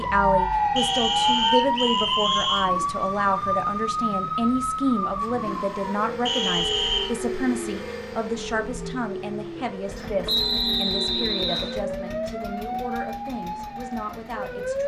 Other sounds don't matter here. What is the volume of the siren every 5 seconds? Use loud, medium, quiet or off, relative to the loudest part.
loud, medium, medium.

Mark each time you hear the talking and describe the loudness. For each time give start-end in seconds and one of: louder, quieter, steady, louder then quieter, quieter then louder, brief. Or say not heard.
0.0-14.8 quieter.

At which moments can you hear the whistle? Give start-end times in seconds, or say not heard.
0.8-2.7, 6.2-7.2, 10.2-11.8.